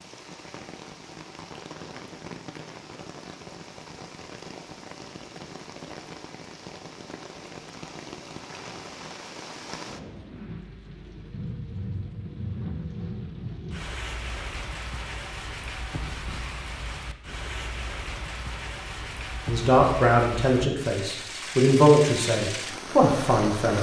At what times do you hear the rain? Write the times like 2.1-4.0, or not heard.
0.0-23.7.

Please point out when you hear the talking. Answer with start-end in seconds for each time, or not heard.
19.4-23.7.